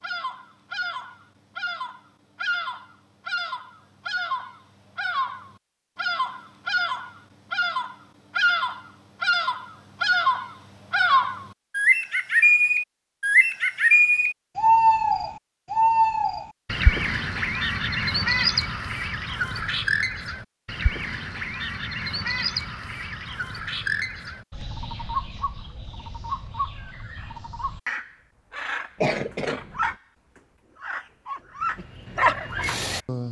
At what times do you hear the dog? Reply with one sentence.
You can hear the dog from 31.2 to 33.2 s.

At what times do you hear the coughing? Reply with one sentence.
You can hear the coughing from 29.0 to 29.9 s.